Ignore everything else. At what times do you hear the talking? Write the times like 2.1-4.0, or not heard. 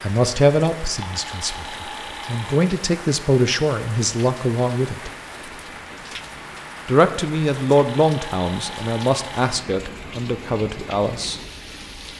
0.0-5.1, 6.8-11.4.